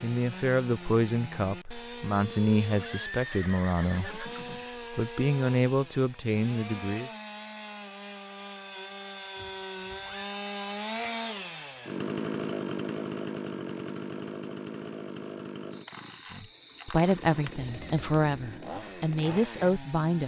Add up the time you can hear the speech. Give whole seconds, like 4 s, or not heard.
10 s.